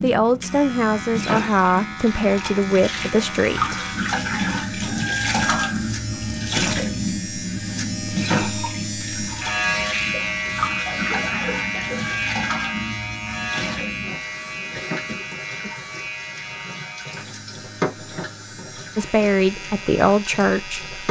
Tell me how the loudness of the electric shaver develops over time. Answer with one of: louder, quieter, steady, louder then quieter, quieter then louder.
louder then quieter.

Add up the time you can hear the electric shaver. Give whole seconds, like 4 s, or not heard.
21 s.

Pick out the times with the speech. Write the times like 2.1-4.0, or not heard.
0.0-3.8, 18.9-20.9.